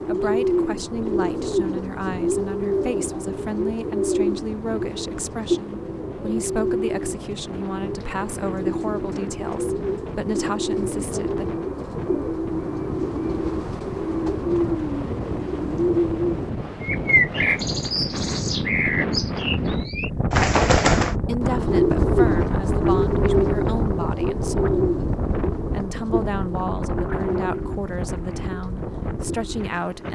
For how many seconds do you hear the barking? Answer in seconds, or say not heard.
not heard.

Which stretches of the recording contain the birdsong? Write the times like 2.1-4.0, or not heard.
0.0-30.0.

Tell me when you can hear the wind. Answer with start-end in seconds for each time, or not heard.
0.0-30.0.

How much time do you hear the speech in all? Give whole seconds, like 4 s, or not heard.
19 s.